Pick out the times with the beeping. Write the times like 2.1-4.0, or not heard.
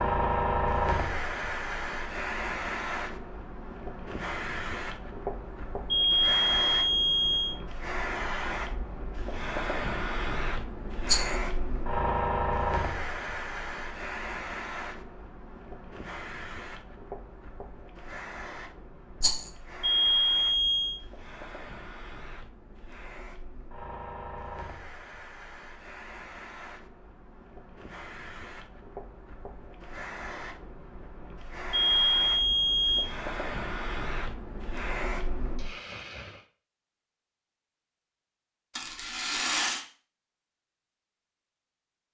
5.9-7.5, 19.8-21.0, 31.7-33.0.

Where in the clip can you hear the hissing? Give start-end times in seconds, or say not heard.
0.0-36.5.